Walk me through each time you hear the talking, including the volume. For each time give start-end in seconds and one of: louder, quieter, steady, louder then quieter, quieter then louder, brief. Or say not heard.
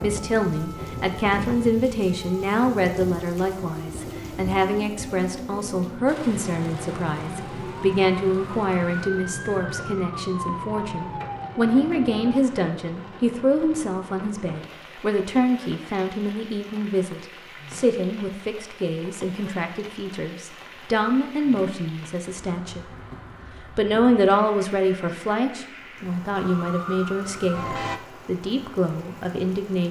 0.0-22.9 steady
23.8-29.8 quieter.